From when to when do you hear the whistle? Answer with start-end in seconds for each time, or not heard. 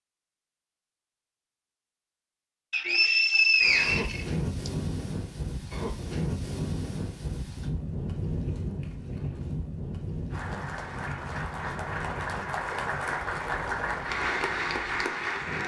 2.7-4.7.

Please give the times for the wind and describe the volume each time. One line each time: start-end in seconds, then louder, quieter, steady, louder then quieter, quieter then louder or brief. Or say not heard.
3.6-15.6 quieter.